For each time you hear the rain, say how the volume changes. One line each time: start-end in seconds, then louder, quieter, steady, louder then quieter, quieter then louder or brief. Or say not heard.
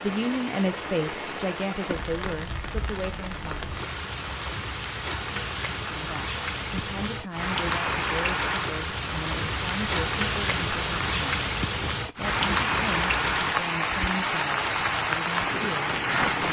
0.0-16.4 louder.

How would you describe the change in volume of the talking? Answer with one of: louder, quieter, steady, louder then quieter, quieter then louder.
quieter.